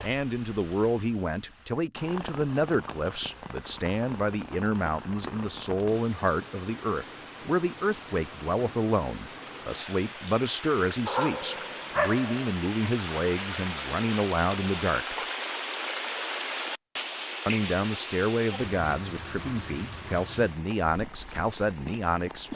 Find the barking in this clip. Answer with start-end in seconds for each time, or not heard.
11.1-12.6.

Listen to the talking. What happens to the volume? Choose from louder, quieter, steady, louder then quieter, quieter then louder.
steady.